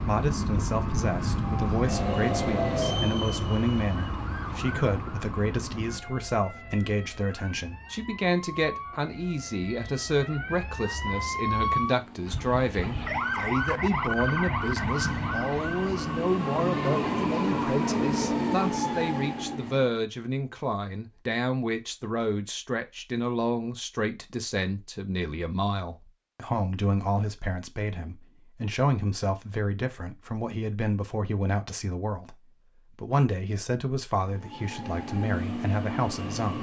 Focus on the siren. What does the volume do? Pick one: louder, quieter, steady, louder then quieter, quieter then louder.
quieter then louder.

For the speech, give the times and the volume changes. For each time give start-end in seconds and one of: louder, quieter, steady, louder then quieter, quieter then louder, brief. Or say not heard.
0.0-36.5 steady.